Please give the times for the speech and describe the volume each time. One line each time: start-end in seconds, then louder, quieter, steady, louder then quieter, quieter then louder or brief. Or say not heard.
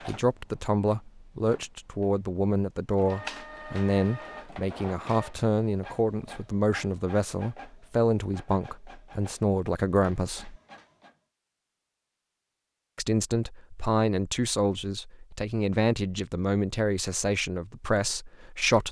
0.1-10.6 steady
12.9-18.8 steady.